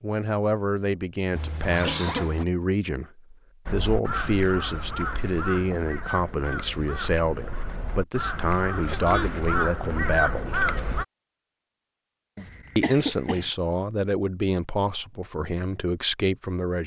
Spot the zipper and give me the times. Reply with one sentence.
The zipper can be heard from 1.4 to 2.5 s.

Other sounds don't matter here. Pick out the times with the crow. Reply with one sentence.
The crow can be heard from 3.6 to 11.1 s.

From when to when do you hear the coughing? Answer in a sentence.
The coughing can be heard from 1.6 to 2.4 s, from 8.8 to 9.4 s and from 12.3 to 13.5 s.